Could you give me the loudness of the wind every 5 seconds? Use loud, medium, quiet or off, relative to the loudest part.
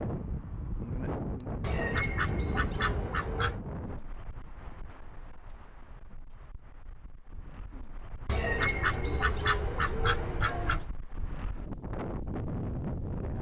loud, quiet, loud.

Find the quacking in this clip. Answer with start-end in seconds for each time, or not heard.
1.6-3.6, 8.2-10.9.